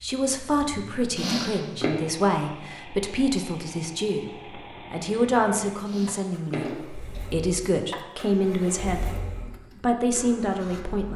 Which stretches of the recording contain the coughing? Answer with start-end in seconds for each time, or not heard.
1.1-1.9, 5.8-7.2.